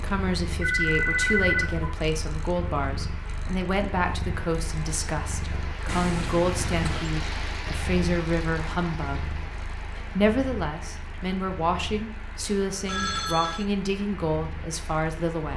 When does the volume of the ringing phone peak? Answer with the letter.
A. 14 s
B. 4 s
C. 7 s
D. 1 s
D.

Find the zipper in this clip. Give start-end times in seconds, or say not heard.
not heard.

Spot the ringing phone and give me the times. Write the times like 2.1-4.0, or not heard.
0.6-1.9, 5.8-7.1, 12.8-13.7.